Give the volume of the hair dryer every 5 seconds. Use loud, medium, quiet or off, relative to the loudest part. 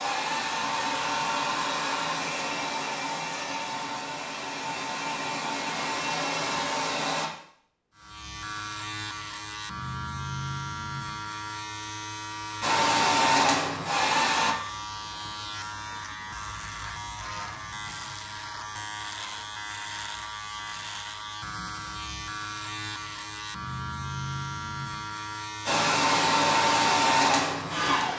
medium, medium, loud, off, off, loud.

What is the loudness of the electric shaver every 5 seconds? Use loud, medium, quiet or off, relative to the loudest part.
off, loud, loud, loud, loud, loud.